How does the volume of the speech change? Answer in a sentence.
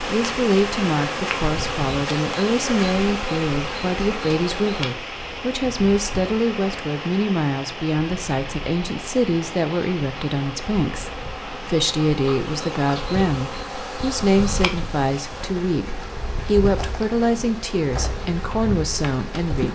The volume of the speech stays about the same.